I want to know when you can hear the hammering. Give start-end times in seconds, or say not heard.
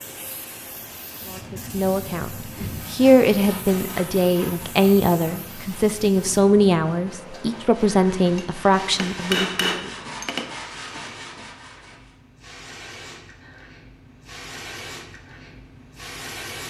8.2-10.6.